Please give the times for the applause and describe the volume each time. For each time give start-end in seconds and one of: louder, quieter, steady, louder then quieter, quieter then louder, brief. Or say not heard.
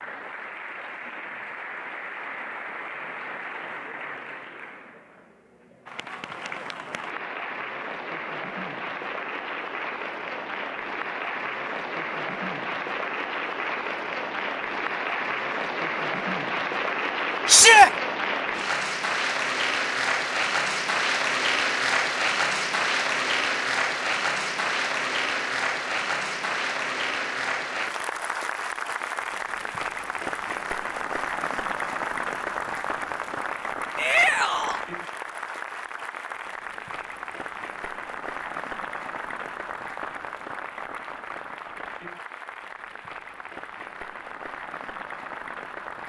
0.0-46.0 louder then quieter.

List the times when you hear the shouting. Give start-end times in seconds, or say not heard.
17.4-17.9, 34.0-34.8.